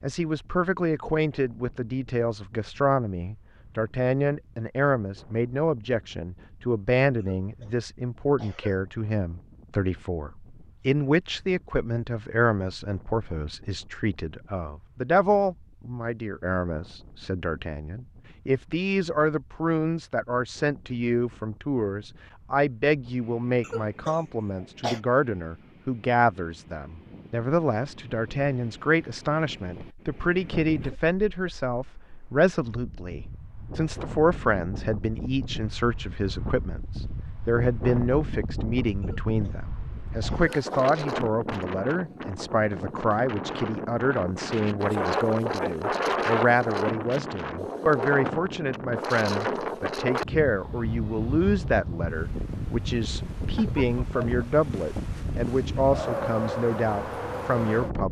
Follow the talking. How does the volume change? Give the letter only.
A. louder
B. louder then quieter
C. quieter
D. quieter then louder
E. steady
E.